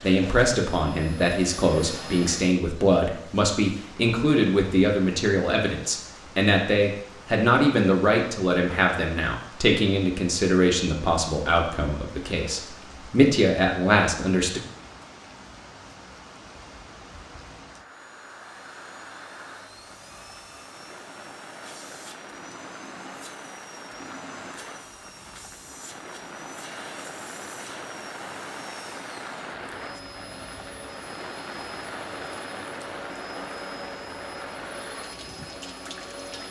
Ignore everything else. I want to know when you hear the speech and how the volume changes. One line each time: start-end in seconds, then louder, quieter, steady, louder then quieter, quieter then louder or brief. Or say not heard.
0.0-14.6 steady.